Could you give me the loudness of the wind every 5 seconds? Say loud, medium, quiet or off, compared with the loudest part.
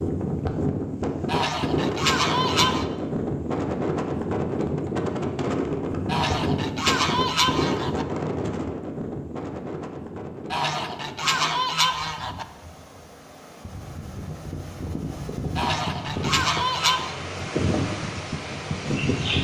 loud, loud, quiet, loud.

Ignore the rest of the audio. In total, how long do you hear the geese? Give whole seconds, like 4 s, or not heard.
7 s.